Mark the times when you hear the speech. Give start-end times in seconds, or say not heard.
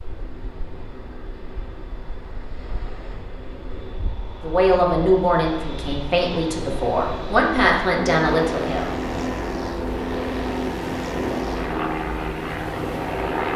4.4-8.9.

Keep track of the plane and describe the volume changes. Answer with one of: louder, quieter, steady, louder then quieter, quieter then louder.
louder.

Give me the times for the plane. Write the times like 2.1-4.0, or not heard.
0.0-13.5.